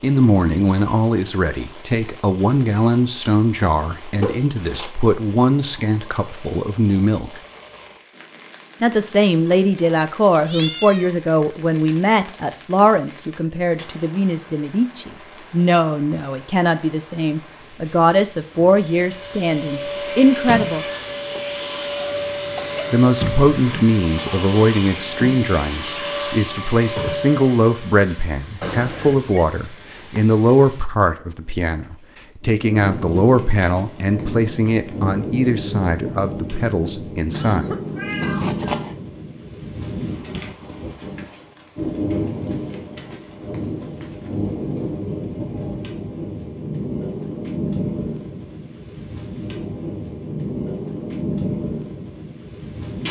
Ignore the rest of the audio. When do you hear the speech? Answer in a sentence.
The speech can be heard from 0.0 to 7.4 s, from 8.8 to 20.9 s and from 22.9 to 37.7 s.